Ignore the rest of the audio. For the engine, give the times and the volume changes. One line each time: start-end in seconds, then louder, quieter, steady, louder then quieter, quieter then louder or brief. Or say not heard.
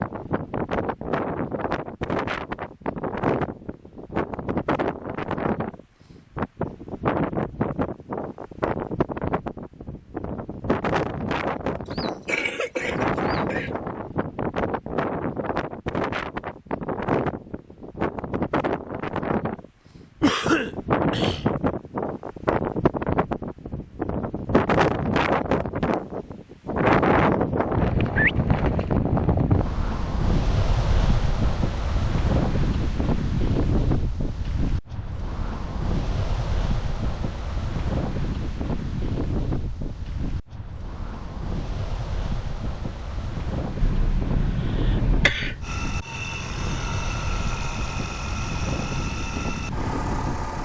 45.6-50.5 steady.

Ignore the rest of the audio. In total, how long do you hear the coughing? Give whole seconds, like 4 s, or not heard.
5 s.